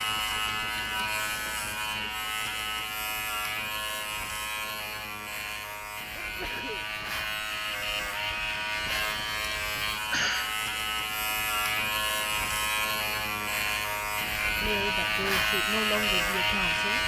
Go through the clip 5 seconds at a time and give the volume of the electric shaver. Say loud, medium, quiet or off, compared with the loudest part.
medium, medium, loud, loud.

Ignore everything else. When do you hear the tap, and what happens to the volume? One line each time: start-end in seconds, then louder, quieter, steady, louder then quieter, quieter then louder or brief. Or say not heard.
not heard.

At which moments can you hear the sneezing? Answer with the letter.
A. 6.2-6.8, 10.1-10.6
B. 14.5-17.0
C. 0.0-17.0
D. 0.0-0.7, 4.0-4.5
A.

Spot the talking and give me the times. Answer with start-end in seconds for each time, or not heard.
14.5-17.0.